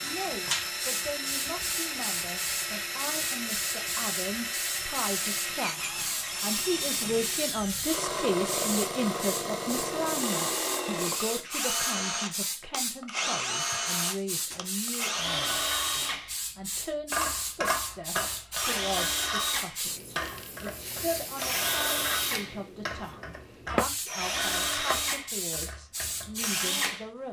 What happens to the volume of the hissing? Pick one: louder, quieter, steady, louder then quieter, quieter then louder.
steady.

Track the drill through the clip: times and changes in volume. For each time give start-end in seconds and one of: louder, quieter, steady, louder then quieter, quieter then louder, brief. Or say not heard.
0.0-27.2 steady.